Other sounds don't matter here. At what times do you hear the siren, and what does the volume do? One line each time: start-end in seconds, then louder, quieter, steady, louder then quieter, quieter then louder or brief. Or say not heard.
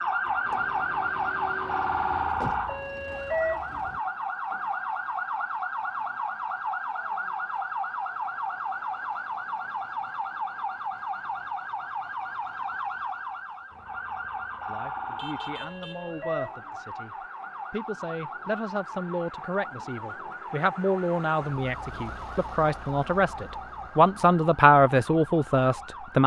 0.0-26.2 quieter.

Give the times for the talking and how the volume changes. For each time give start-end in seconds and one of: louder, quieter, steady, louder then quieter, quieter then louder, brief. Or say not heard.
14.7-26.2 louder.